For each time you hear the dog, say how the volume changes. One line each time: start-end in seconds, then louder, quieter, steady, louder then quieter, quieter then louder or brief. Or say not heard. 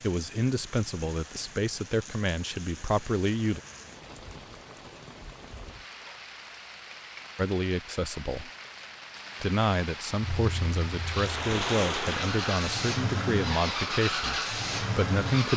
not heard.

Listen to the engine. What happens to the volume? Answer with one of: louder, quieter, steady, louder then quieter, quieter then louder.
louder.